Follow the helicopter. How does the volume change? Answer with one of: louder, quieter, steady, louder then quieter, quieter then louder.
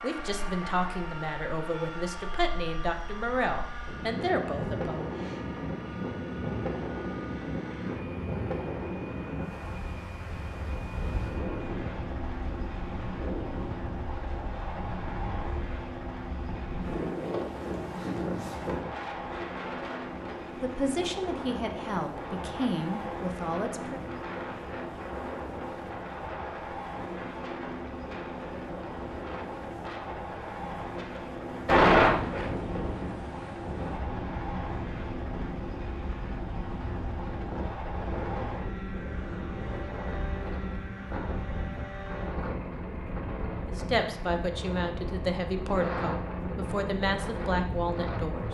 steady.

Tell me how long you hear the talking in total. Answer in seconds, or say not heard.
13 s.